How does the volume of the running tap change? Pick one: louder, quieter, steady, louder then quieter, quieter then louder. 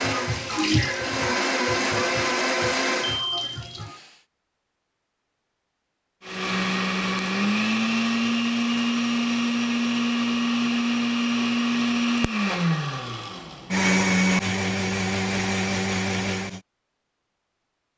quieter.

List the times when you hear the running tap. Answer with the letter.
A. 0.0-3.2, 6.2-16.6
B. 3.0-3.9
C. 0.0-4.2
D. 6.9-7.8
C.